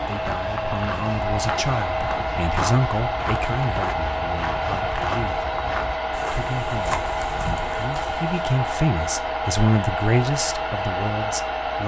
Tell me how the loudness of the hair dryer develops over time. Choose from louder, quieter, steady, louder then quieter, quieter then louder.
steady.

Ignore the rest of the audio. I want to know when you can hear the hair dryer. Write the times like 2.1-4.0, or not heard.
0.0-11.8.